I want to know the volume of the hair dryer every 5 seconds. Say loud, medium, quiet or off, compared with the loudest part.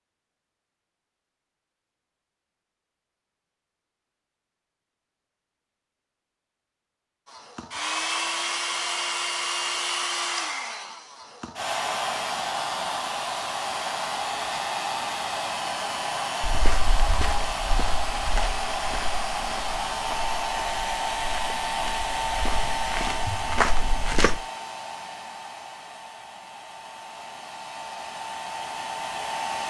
off, loud, loud, loud, loud, medium.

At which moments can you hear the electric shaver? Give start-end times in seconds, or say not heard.
not heard.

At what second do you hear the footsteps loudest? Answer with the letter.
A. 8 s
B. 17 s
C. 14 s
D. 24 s
D.